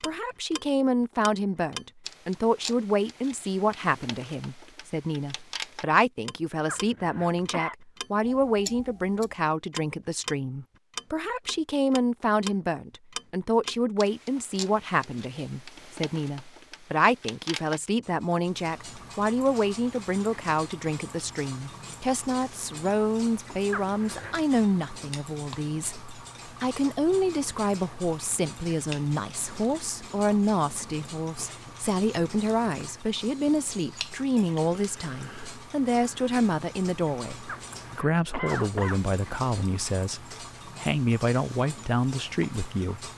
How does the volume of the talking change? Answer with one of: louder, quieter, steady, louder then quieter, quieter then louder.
steady.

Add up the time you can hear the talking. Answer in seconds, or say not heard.
43 s.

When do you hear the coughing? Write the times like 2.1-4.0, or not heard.
6.7-7.8, 23.7-24.4, 37.5-39.0.